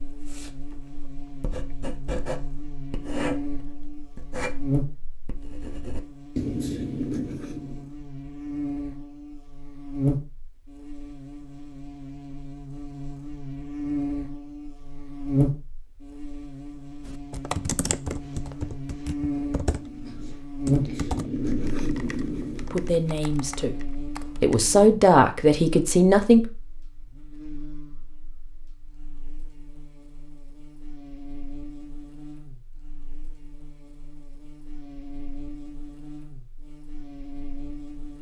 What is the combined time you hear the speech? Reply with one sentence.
The speech can be heard for 3 seconds in total.